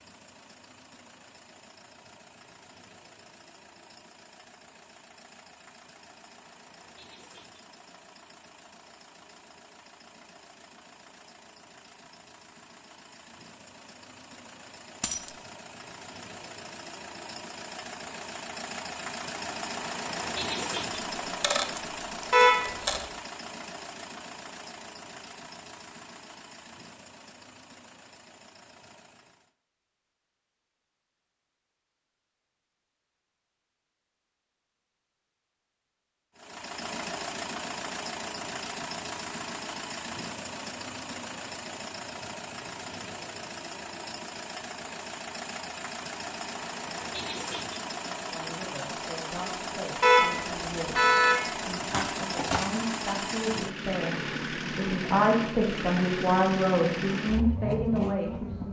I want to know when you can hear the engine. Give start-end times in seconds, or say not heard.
0.0-29.6, 36.4-58.6.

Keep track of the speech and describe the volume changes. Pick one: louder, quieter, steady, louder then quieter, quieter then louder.
louder.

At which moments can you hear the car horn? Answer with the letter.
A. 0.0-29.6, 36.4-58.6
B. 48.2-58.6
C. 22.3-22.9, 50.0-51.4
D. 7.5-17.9
C.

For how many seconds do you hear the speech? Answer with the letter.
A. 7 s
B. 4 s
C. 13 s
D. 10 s
D.